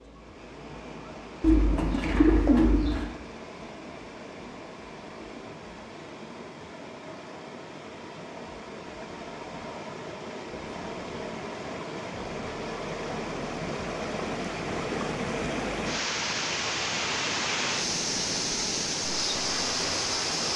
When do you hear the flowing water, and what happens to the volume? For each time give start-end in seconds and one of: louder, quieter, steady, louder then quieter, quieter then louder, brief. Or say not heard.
0.0-20.5 louder.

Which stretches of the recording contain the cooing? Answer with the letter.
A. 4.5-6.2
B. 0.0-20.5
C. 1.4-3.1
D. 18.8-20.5
C.